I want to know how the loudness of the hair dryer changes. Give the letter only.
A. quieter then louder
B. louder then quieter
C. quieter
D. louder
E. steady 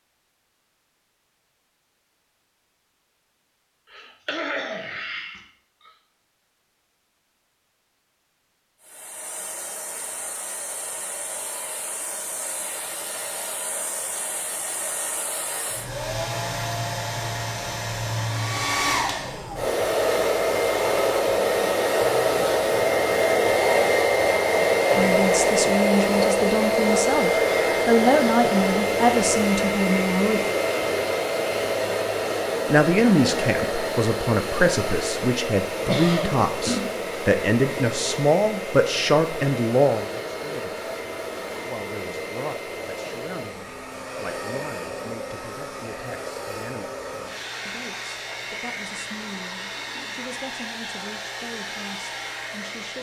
B.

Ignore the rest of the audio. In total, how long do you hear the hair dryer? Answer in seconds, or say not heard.
44 s.